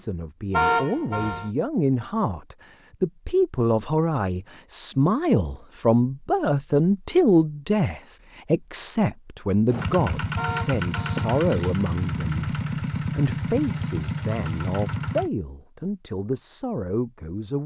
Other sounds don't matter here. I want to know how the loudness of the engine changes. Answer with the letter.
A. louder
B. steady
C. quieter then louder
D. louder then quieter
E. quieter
B.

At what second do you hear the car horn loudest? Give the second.
1 s.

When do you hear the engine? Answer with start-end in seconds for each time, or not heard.
9.7-15.3.